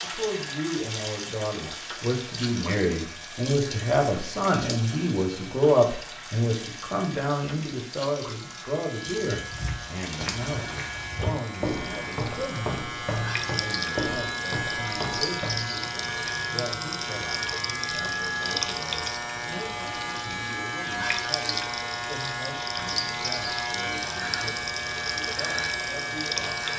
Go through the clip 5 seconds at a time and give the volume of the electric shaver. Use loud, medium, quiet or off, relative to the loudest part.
quiet, quiet, loud, loud, loud, loud.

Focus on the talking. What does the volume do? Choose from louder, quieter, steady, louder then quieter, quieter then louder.
quieter.